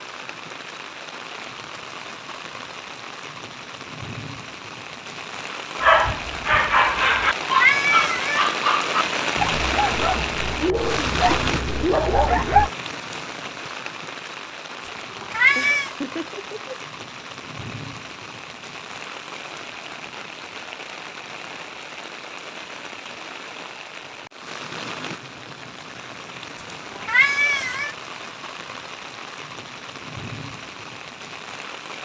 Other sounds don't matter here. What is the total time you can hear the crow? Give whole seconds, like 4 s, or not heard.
not heard.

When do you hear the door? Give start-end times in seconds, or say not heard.
not heard.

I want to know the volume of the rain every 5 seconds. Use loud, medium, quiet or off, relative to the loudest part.
medium, loud, loud, medium, medium, medium, medium.